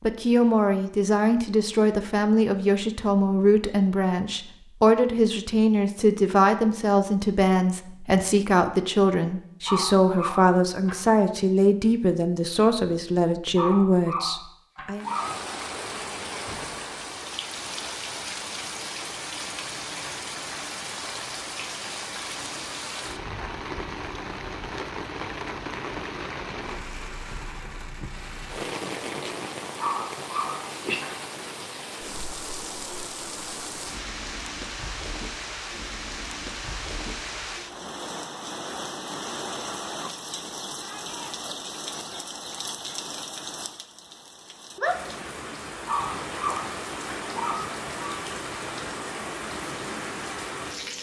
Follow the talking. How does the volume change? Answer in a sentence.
The loudness of the talking stays about the same.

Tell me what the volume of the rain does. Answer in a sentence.
The loudness of the rain stays about the same.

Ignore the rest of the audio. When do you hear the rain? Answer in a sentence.
The rain can be heard from 15.0 to 50.9 s.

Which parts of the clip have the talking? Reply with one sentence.
The talking can be heard from 0.0 to 15.1 s.